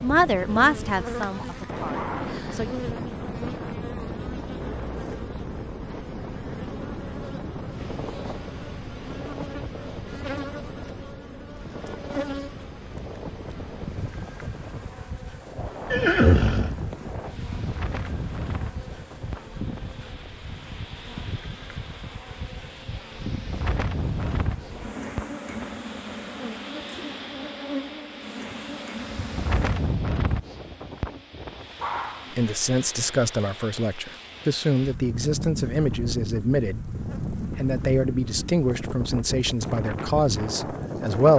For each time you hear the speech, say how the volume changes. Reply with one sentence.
You can hear the speech briefly from 0.0 to 2.7 s; and from 32.3 to 41.3 s, at a steady volume.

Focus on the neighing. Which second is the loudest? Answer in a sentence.
The volume of the neighing peaks at 16 seconds.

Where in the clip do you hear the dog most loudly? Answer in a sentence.
The loudest moment of the dog is at 32 seconds.